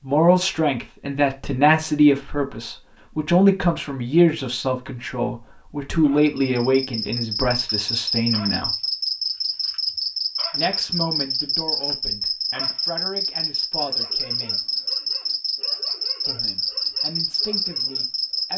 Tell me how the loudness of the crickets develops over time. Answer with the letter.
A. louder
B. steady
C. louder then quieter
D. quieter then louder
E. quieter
B.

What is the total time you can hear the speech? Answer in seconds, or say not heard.
15 s.